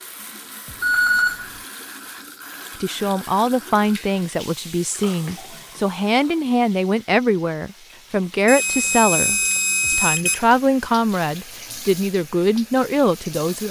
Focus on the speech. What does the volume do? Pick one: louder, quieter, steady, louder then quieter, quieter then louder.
steady.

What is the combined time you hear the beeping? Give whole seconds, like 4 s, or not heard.
3 s.